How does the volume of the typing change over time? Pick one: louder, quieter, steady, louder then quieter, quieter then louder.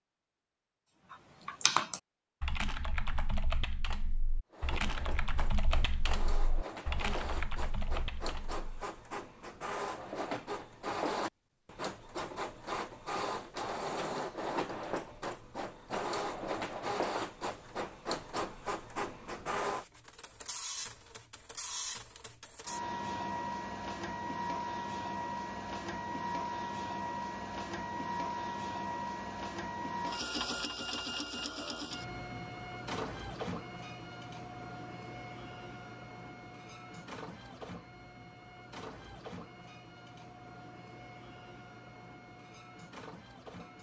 quieter.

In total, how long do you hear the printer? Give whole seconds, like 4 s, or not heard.
39 s.